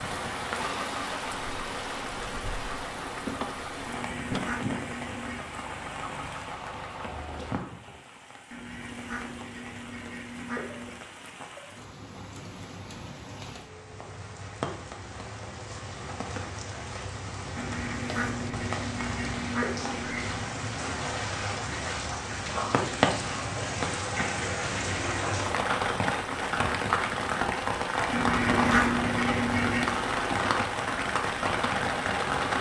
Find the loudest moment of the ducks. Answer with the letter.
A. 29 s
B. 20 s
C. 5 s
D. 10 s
A.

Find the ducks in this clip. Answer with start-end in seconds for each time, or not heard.
3.9-5.4, 8.5-11.0, 17.6-20.4, 28.1-29.9.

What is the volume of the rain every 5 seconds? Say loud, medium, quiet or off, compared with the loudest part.
medium, quiet, quiet, medium, loud, loud, loud.